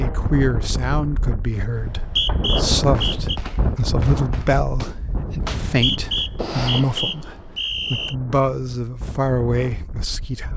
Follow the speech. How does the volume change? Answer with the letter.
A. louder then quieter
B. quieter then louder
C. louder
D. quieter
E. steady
E.